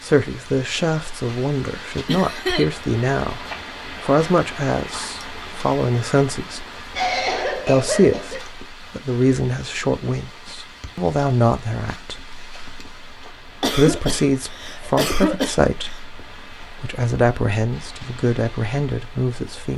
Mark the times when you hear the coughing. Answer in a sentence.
You can hear the coughing from 2.0 to 2.6 s, from 7.0 to 8.4 s and from 13.6 to 16.0 s.